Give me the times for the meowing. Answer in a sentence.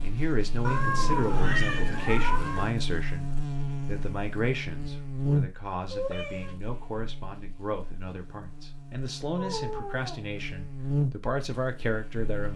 The meowing can be heard from 0.7 to 2.6 s, from 5.9 to 6.5 s and from 9.3 to 10.3 s.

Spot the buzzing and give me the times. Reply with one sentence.
You can hear the buzzing from 0.0 to 12.5 s.